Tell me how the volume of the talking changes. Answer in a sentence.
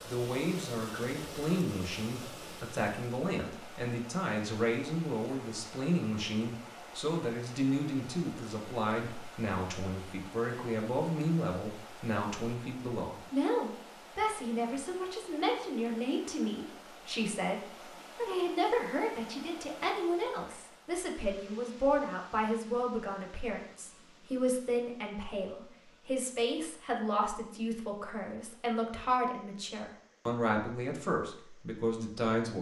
The volume of the talking stays about the same.